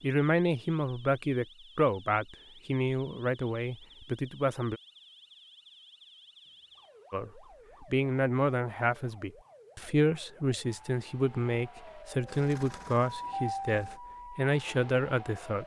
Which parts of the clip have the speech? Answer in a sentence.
You can hear the speech from 0.0 to 4.8 s and from 7.1 to 15.6 s.